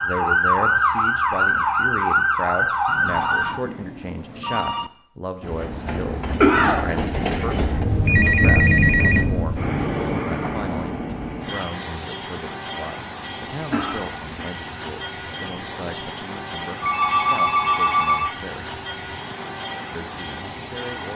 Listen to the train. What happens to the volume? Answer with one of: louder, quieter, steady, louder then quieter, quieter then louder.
quieter.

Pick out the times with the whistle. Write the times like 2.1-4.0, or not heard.
not heard.